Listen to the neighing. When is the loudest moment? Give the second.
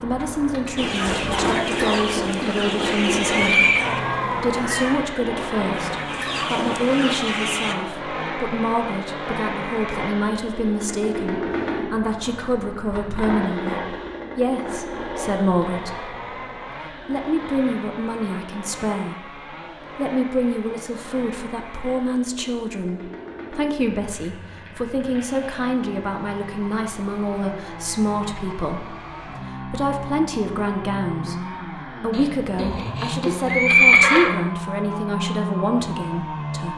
34 s.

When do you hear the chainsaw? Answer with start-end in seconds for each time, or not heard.
0.0-36.7.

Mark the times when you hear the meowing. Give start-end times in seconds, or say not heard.
3.8-5.0.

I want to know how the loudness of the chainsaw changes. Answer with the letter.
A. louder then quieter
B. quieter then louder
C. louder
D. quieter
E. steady
B.